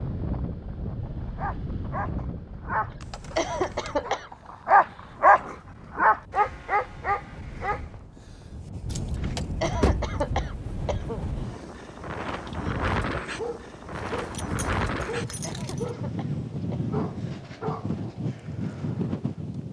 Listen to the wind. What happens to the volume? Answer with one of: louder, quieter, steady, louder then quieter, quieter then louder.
quieter then louder.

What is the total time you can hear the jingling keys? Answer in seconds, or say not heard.
4 s.